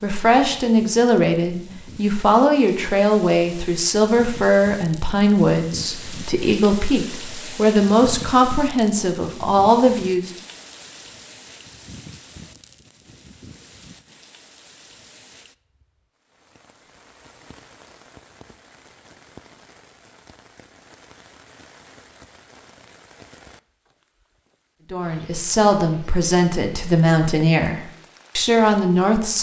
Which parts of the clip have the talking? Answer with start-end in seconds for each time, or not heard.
0.0-10.3, 24.9-29.3.